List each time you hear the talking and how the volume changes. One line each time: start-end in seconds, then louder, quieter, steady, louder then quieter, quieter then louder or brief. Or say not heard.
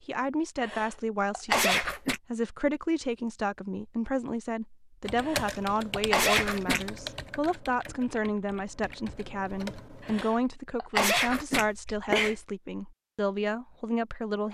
0.1-14.4 steady.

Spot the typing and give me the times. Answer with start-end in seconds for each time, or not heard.
5.0-10.2.